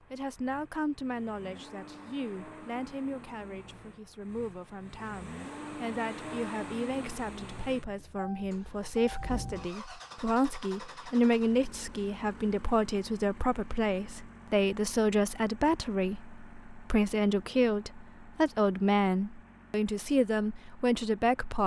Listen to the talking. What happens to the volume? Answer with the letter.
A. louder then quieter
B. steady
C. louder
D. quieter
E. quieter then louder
C.